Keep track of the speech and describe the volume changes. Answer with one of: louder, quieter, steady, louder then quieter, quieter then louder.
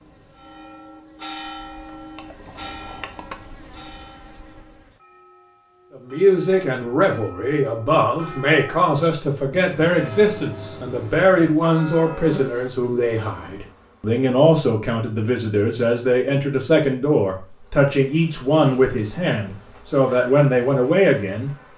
steady.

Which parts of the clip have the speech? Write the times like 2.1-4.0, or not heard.
6.0-21.5.